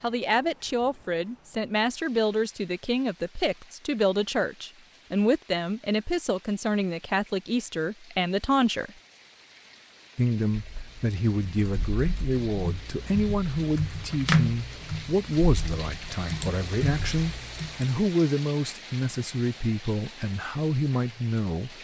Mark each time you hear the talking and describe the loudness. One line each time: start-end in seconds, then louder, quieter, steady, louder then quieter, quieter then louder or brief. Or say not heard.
0.0-8.9 steady
10.2-21.7 steady.